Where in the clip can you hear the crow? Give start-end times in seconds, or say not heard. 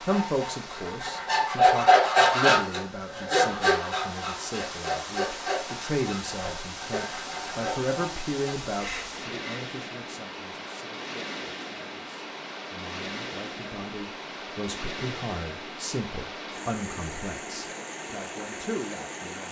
not heard.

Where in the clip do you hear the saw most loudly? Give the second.
2 s.